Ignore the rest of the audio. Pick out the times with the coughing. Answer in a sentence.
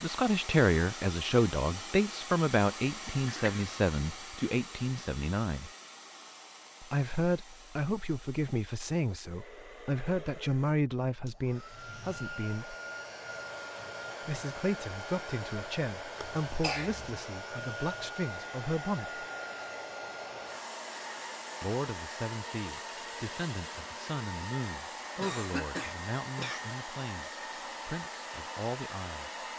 The coughing can be heard from 3.2 to 3.7 s, from 16.2 to 17.1 s and from 25.1 to 26.7 s.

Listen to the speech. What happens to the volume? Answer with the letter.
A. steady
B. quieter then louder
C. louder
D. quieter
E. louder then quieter
D.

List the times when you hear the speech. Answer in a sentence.
The speech can be heard from 0.0 to 5.7 s, from 6.8 to 12.8 s, from 14.2 to 19.2 s and from 21.6 to 29.3 s.